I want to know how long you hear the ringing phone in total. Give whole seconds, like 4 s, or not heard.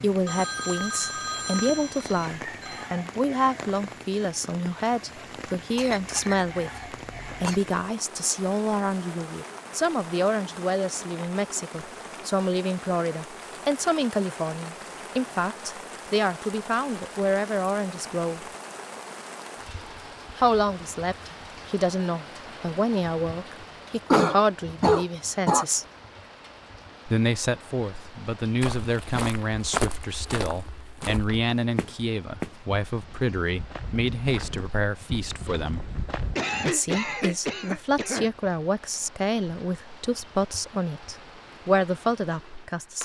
3 s.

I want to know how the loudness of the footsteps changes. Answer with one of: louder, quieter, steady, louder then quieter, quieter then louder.
quieter.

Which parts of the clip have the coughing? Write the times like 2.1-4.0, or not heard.
5.8-7.6, 24.1-25.6, 36.4-38.3.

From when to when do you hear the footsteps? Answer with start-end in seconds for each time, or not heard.
28.6-36.4.